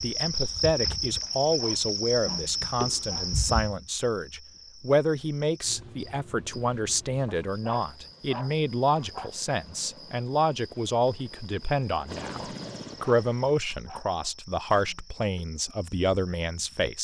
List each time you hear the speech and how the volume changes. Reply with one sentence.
You can hear the speech from 0.0 to 16.9 s, at a steady volume.